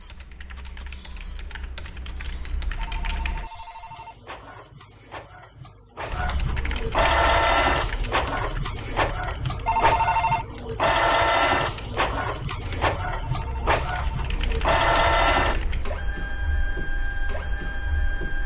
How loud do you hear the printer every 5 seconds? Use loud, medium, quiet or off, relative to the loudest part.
quiet, loud, loud, loud.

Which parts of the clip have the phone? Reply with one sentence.
The phone can be heard from 2.8 to 4.2 s, from 9.7 to 10.4 s and from 13.0 to 14.3 s.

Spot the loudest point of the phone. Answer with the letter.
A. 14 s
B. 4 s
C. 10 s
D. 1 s
C.